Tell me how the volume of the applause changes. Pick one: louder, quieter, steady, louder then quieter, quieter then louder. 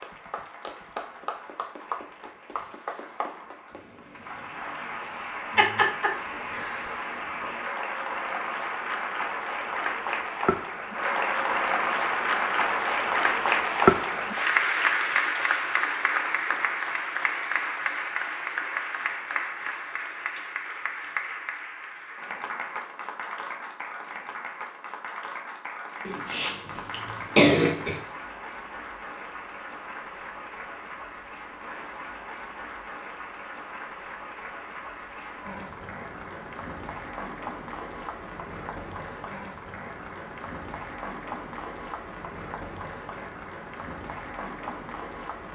louder then quieter.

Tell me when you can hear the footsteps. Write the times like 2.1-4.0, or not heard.
not heard.